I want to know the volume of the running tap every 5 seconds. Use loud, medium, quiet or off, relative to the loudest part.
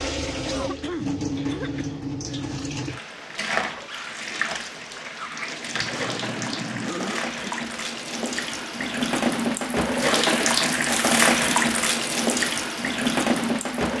medium, medium, loud.